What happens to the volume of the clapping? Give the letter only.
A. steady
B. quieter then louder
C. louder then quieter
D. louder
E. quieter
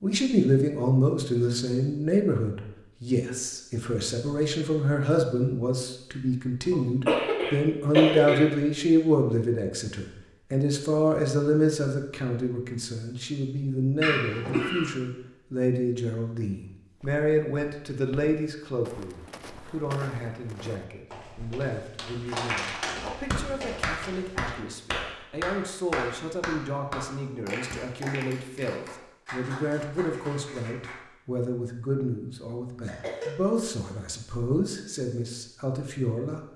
E.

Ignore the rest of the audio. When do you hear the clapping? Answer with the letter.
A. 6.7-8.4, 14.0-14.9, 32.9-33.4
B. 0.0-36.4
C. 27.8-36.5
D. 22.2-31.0
D.